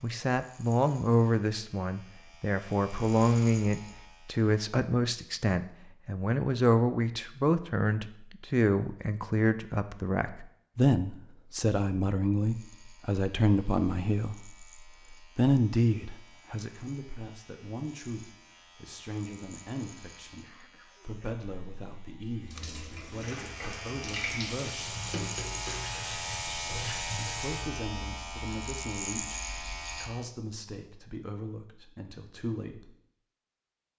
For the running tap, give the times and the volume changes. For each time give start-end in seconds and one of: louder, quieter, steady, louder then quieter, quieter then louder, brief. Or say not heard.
22.4-27.7 louder.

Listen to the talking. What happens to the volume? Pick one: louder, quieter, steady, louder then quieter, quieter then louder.
quieter.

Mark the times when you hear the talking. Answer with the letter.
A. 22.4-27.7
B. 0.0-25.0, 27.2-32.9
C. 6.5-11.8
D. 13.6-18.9
B.